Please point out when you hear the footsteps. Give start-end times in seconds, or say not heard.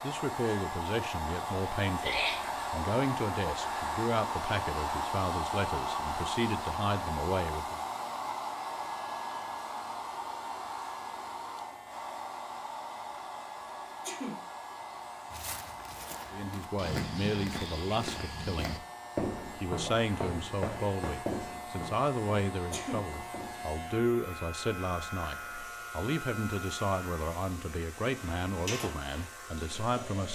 15.3-23.8.